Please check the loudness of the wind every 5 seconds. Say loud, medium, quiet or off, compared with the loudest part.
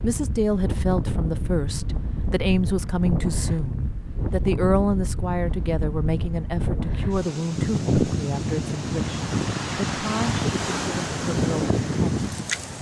medium, loud, loud.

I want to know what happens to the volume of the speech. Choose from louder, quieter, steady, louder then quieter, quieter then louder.
quieter.